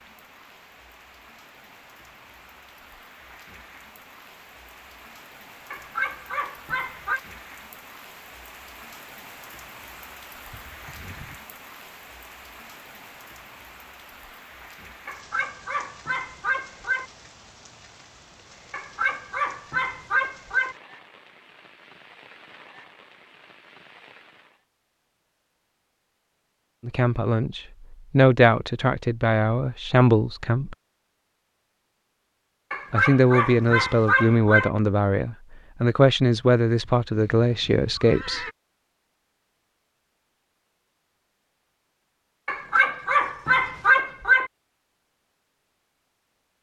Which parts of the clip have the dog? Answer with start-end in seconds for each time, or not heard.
5.7-7.2, 15.1-17.1, 18.7-20.8, 32.7-34.7, 42.5-44.5.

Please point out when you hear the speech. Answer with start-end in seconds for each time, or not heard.
26.8-30.8, 32.9-38.5.